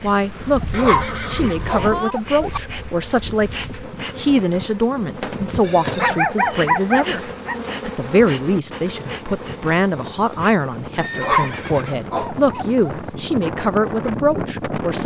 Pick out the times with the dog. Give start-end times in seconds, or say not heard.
0.6-2.6, 6.0-7.5, 11.1-12.9.